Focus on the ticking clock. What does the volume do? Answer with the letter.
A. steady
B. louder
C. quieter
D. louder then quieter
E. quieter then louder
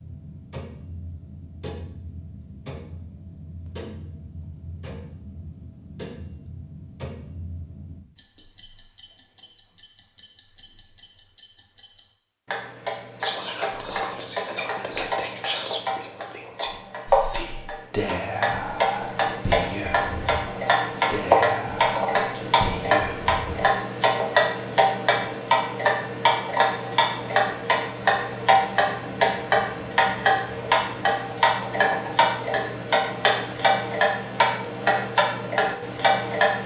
B.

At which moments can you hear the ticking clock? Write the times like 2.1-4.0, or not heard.
0.0-36.6.